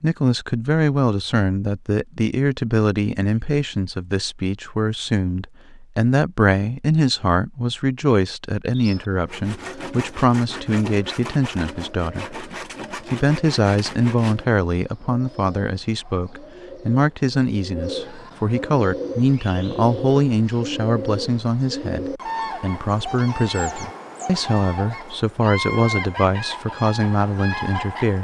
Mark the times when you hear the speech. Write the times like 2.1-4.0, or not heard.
0.0-12.4, 13.1-28.1.